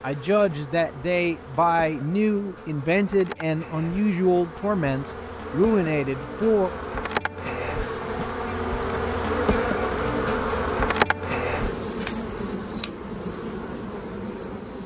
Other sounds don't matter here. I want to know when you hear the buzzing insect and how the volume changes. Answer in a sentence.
The buzzing insect can be heard from 0.0 to 14.8 s, getting louder then quieter.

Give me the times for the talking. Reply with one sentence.
You can hear the talking from 0.0 to 6.8 s.